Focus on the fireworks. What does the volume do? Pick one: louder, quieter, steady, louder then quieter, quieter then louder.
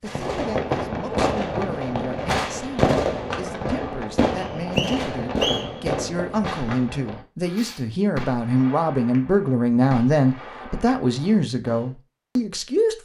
quieter.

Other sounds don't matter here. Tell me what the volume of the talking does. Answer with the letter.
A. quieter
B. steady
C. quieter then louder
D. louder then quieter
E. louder
E.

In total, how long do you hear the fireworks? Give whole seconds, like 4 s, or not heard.
12 s.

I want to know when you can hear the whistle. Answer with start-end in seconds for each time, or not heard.
4.3-5.8.